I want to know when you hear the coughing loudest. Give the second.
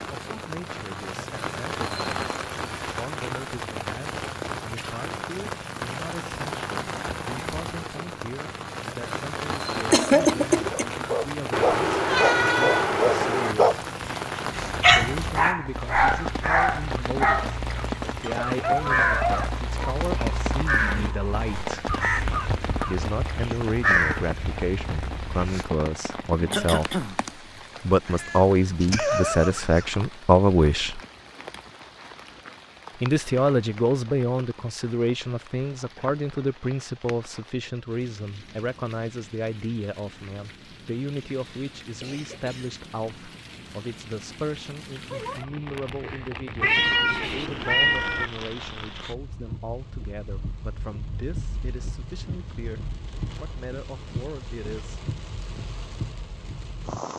10 s.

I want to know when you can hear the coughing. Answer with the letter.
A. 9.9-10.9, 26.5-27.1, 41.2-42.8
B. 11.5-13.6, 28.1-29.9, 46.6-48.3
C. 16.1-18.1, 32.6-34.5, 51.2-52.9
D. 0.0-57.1
A.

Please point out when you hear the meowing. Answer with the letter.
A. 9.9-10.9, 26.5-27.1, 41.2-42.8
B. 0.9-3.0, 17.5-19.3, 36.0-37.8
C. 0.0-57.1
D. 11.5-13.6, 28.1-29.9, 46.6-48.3
D.